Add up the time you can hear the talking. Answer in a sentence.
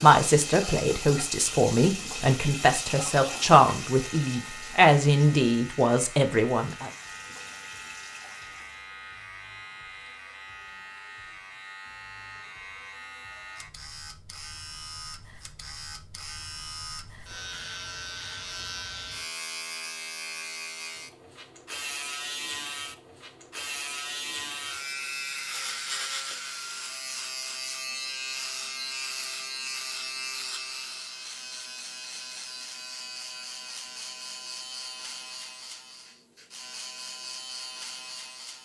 You can hear the talking for 7 seconds altogether.